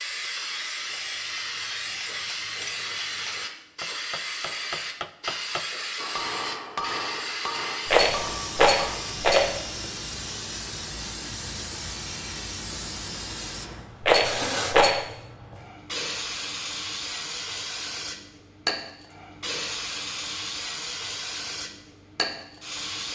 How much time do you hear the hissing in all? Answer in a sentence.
You can hear the hissing for 23 seconds altogether.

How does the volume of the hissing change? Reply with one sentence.
The volume of the hissing stays about the same.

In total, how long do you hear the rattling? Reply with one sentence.
You can hear the rattling for 3 seconds altogether.